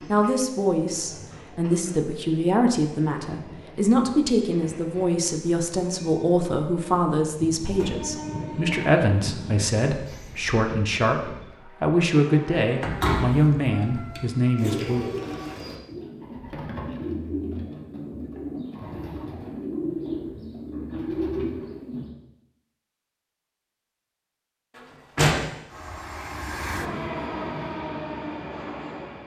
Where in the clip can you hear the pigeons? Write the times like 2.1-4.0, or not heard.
14.6-22.1.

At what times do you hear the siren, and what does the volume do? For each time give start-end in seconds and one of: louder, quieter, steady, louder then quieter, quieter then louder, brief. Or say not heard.
not heard.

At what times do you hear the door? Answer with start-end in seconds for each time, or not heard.
7.8-8.2, 12.8-14.2, 24.8-25.4.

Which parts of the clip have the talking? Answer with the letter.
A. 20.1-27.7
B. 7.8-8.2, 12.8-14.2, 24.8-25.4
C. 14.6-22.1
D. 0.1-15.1
D.